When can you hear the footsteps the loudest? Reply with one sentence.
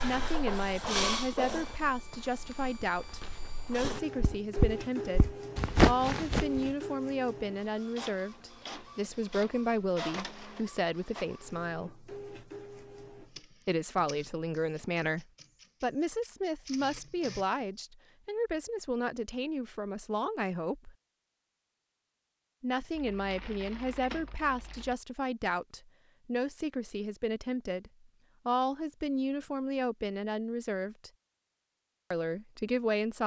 The loudest moment of the footsteps is at 6 seconds.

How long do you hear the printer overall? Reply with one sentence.
You can hear the printer for 18 seconds altogether.